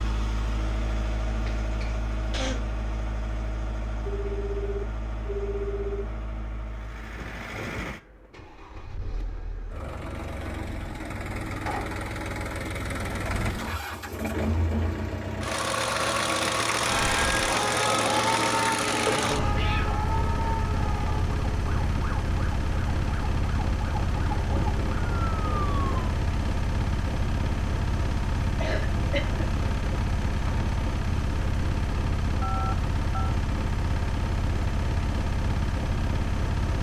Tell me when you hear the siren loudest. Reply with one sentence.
The volume of the siren peaks at 18 seconds.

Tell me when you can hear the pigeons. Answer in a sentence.
The pigeons can't be heard in this clip.